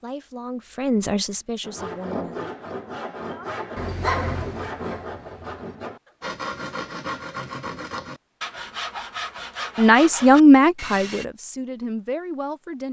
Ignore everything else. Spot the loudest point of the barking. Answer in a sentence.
The volume of the barking peaks at 4 seconds.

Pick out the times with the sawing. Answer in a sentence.
The sawing can be heard from 1.6 to 11.2 s.